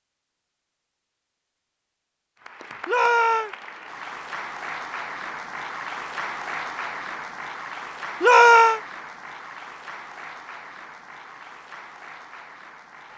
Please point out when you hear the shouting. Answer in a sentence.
The shouting can be heard from 2.9 to 3.5 s and from 8.2 to 8.8 s.